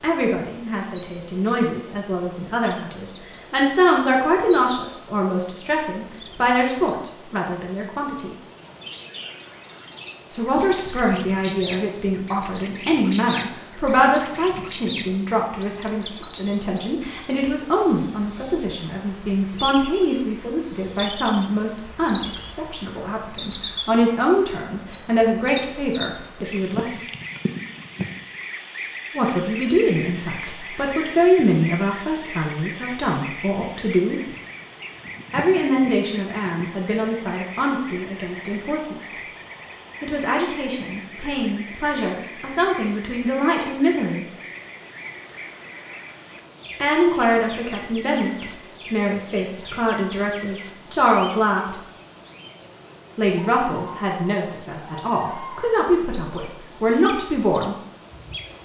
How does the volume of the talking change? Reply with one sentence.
The loudness of the talking stays about the same.